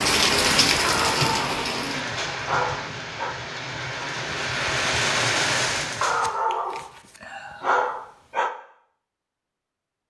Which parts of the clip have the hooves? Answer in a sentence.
You can't hear the hooves here.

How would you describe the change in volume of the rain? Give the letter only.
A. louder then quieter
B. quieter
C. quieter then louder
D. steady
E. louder
C.